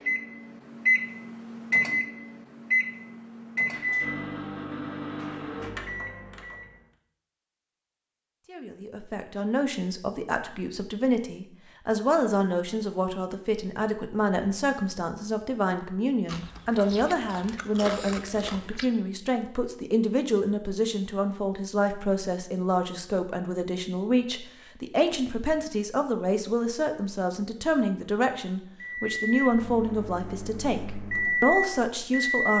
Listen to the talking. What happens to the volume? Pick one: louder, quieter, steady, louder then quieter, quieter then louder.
steady.